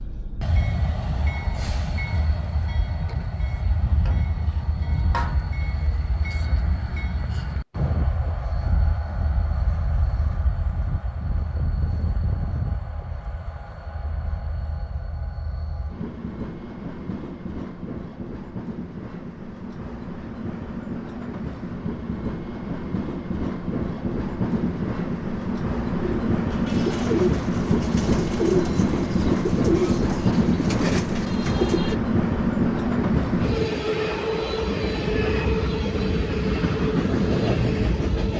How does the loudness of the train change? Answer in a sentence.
The volume of the train goes up.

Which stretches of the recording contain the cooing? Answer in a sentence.
You can hear the cooing from 26.0 to 31.9 s.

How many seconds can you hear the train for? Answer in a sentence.
You can hear the train for 38 seconds altogether.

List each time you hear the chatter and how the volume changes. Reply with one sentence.
The chatter can't be heard in this clip.